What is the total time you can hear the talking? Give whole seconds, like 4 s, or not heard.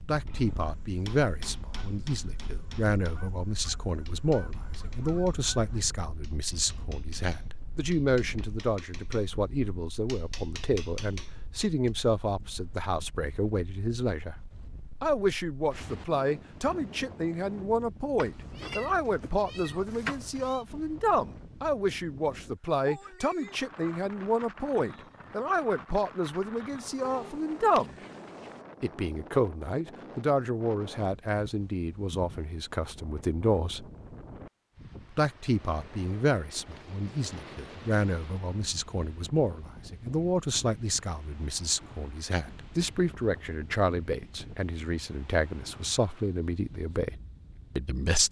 46 s.